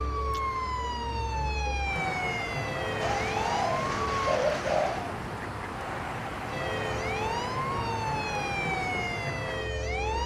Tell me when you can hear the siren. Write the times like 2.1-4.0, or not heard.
0.0-4.4, 6.5-10.2.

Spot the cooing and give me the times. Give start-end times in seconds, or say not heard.
3.0-5.2.